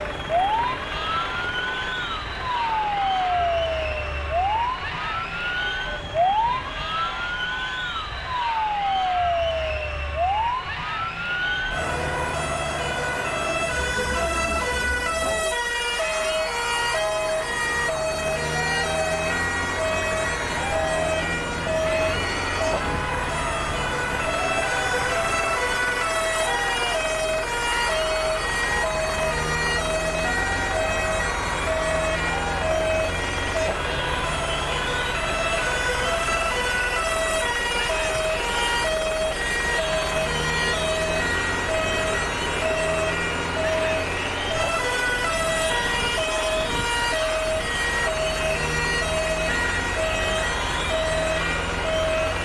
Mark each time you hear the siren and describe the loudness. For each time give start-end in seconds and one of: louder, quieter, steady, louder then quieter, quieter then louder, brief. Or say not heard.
0.0-52.4 steady.